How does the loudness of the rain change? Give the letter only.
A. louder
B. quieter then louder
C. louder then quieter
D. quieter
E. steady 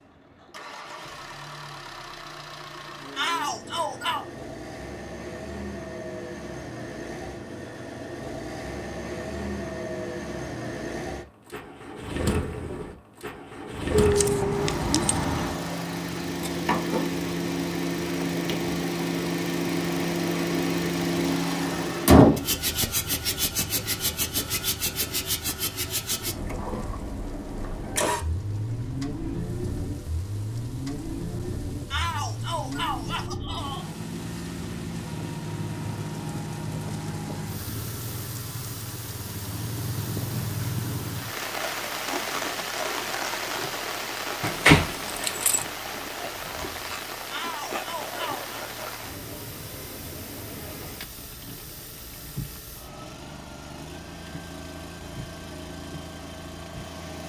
C.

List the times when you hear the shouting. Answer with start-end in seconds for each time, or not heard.
3.1-4.2, 31.9-33.9, 47.3-48.5.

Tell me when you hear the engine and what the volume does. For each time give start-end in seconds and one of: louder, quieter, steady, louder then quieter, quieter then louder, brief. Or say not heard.
0.0-57.2 louder then quieter.